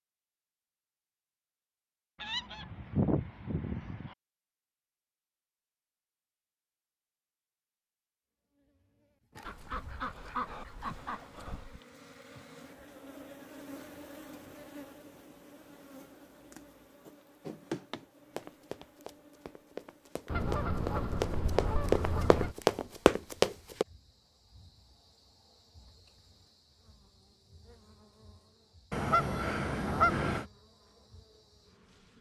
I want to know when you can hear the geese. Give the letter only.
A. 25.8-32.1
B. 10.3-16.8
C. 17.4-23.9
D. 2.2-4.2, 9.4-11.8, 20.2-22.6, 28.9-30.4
D.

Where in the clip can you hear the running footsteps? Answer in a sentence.
The running footsteps can be heard from 17.4 to 23.9 s.